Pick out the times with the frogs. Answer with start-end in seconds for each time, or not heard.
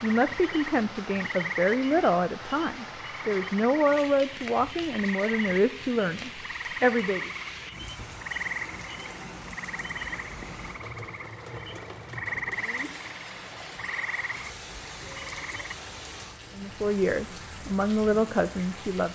0.0-15.8.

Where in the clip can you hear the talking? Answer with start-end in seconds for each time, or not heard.
0.0-7.3, 16.6-19.1.